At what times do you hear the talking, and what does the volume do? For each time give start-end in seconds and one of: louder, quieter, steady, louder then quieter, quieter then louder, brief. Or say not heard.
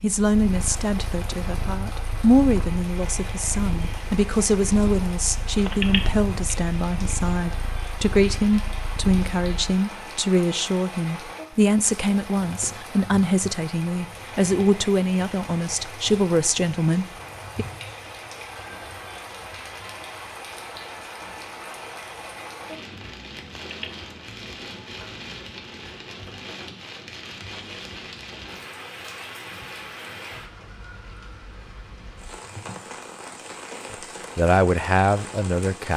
0.0-17.6 steady
33.9-35.9 brief.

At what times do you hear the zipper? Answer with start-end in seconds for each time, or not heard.
not heard.